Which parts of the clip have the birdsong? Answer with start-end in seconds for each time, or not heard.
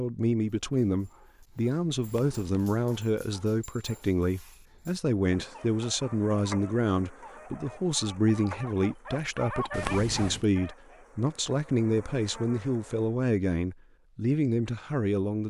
not heard.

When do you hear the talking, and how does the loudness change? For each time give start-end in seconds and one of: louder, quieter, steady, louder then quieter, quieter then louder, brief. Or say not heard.
0.0-15.4 steady.